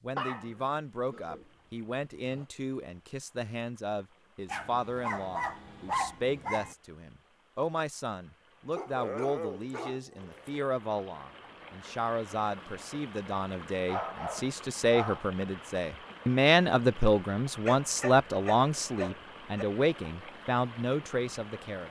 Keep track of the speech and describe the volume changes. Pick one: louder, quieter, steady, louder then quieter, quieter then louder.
louder.